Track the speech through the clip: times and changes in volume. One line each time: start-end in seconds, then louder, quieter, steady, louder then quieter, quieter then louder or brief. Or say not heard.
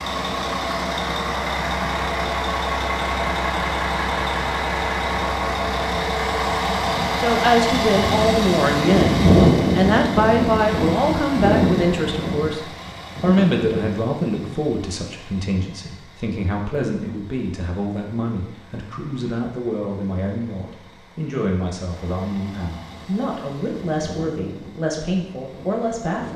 7.2-26.3 quieter.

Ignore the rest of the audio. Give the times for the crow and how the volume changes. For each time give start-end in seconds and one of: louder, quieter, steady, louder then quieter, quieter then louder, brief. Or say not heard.
not heard.